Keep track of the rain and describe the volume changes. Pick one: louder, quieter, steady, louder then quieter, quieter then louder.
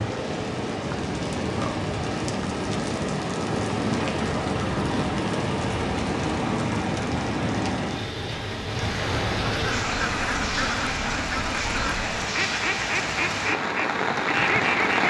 steady.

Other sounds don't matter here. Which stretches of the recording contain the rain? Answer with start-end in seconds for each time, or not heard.
0.0-15.0.